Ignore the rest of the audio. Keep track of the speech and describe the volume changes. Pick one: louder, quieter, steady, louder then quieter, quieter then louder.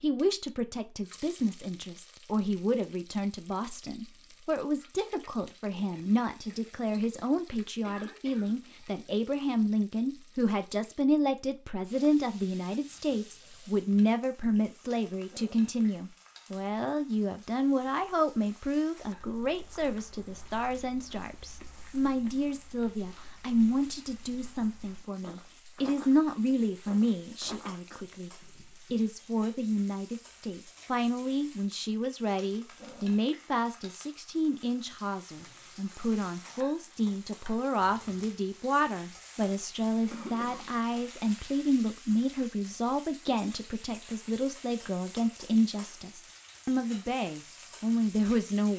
steady.